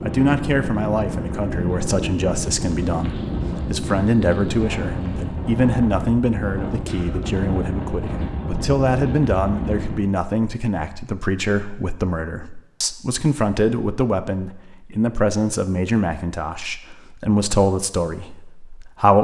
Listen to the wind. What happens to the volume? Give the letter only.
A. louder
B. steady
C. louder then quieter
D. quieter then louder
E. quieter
B.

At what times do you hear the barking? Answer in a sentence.
You can't hear the barking here.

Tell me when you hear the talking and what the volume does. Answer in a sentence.
You can hear the talking from 0.0 to 19.1 s, at a steady volume.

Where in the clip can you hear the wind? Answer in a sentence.
The wind can be heard from 0.0 to 10.1 s.